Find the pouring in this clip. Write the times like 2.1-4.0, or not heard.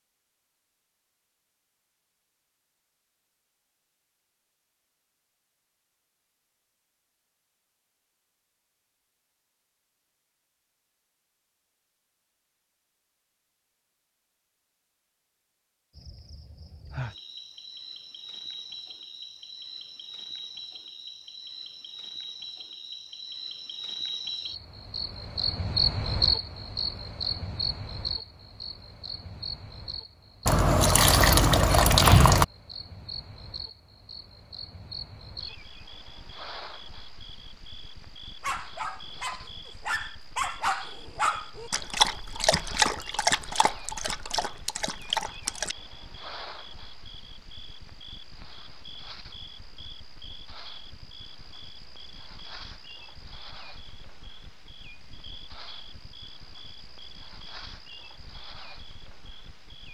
30.4-32.5.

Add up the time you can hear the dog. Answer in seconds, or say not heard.
7 s.